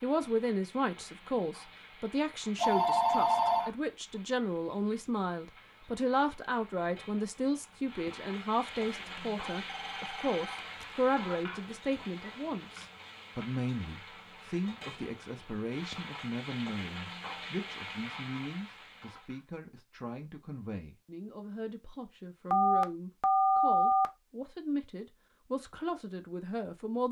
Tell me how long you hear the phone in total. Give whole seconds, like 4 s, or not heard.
4 s.